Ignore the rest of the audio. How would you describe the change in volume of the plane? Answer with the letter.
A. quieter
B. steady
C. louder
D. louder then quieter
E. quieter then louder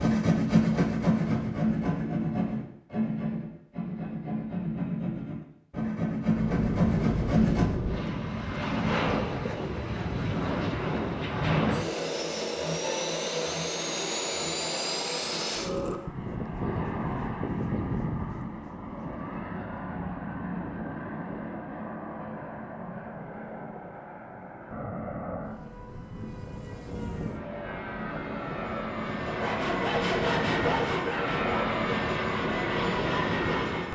E.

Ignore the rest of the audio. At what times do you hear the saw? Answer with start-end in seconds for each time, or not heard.
0.0-7.8, 29.2-33.9.